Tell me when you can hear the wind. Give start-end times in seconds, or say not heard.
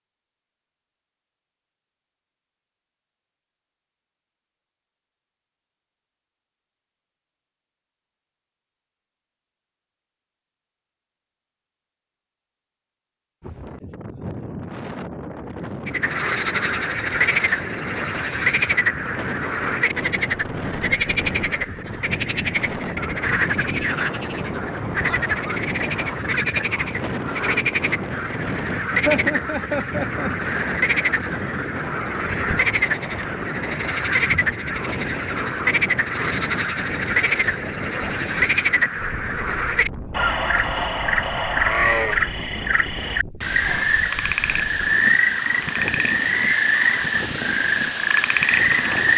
13.4-49.1.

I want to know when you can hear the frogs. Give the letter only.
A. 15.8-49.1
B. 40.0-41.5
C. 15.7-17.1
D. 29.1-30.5
A.